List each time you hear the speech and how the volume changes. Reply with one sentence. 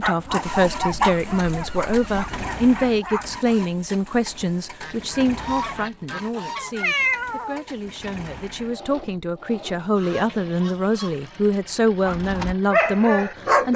The speech can be heard from 0.0 to 13.7 s, getting quieter then louder.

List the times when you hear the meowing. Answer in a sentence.
You can hear the meowing from 6.8 to 8.1 s.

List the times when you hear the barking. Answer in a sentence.
The barking can be heard from 0.0 to 3.6 s and from 12.1 to 13.7 s.